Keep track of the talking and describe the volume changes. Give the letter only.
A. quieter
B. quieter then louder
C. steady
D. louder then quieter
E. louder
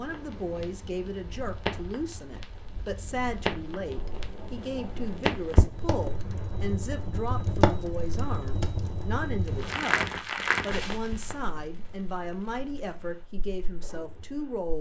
C.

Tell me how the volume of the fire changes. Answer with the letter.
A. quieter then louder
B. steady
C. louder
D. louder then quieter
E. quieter
D.